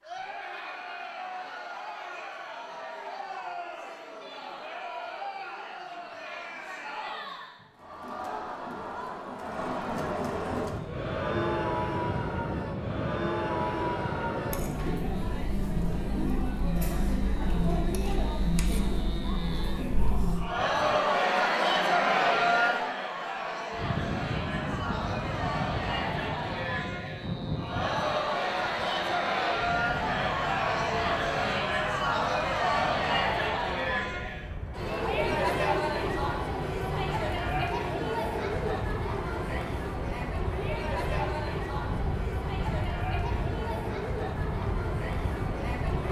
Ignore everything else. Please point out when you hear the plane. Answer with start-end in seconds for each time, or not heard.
10.5-21.0, 23.8-46.0.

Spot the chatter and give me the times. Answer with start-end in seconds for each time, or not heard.
0.0-46.0.